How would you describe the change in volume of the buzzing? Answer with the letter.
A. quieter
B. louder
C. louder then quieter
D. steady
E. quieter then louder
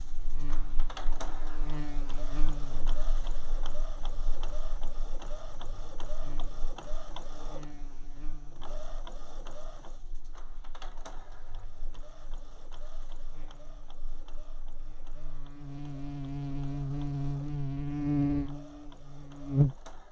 E.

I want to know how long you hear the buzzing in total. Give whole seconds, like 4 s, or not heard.
20 s.